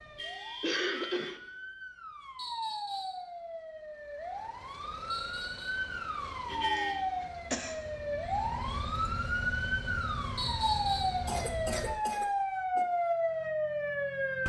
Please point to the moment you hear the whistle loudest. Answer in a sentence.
The volume of the whistle peaks at 11 seconds.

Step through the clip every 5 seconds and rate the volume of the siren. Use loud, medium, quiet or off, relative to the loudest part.
medium, loud, loud.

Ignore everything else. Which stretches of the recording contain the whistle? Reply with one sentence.
You can hear the whistle from 2.4 to 3.2 s, from 5.1 to 5.8 s and from 10.3 to 11.2 s.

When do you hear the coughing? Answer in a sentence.
You can hear the coughing from 0.6 to 1.4 s, from 6.8 to 7.8 s and from 11.2 to 12.8 s.